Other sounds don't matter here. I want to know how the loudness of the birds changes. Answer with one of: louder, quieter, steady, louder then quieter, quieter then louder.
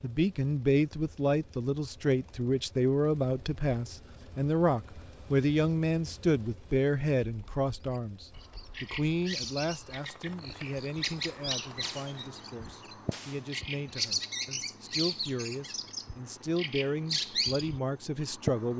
louder.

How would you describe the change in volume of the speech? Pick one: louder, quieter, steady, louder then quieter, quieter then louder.
quieter then louder.